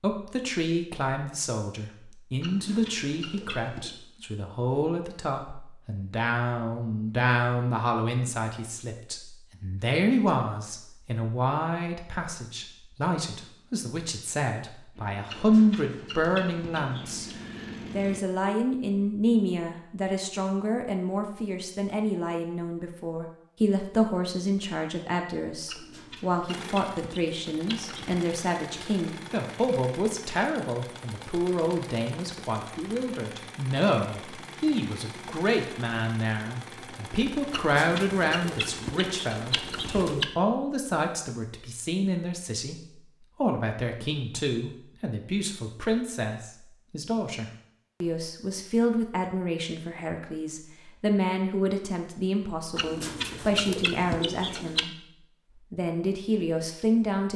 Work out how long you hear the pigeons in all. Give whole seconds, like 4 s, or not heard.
11 s.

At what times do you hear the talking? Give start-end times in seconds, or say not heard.
0.0-17.3, 17.9-42.8, 43.4-54.9, 55.7-57.3.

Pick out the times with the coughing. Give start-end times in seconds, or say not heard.
not heard.